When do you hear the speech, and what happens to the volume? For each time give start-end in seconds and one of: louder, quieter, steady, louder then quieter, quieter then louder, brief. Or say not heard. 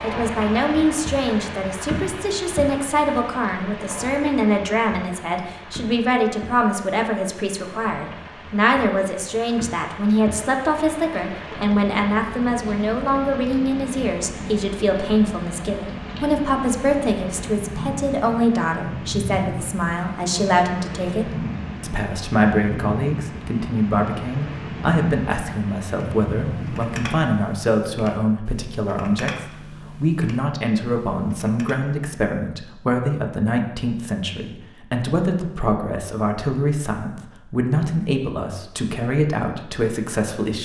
0.0-40.5 steady.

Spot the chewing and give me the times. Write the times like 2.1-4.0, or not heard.
not heard.